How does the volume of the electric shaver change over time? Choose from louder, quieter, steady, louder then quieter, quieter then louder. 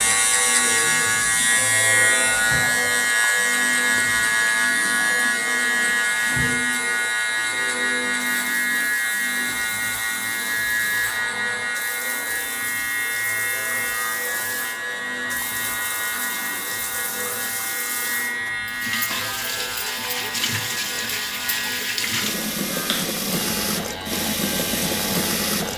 quieter.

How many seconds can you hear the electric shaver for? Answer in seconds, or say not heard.
26 s.